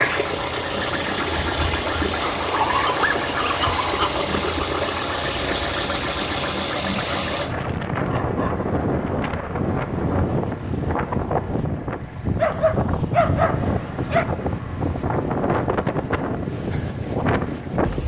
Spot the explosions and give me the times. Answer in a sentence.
You can't hear the explosions here.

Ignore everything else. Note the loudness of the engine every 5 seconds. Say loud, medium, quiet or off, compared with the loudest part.
loud, loud, quiet, quiet.